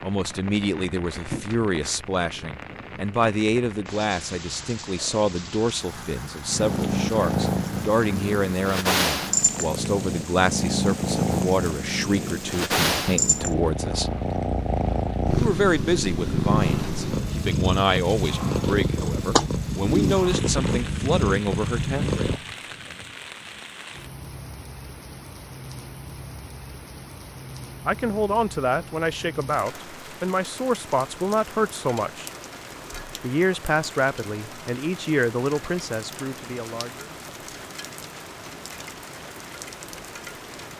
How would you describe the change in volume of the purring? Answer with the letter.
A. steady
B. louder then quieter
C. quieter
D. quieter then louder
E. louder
E.